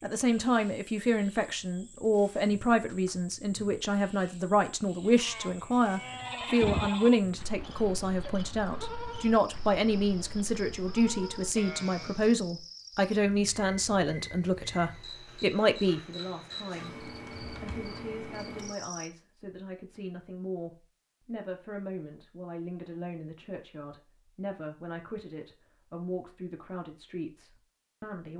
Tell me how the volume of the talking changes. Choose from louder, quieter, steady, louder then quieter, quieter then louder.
quieter.